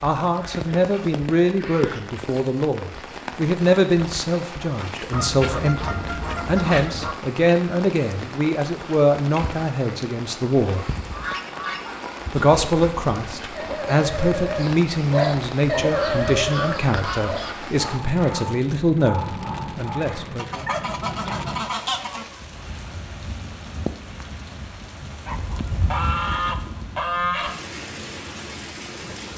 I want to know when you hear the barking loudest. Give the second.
16 s.